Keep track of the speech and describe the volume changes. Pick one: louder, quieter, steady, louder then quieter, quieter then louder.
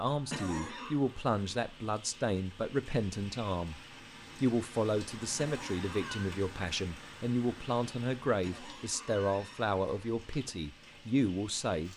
steady.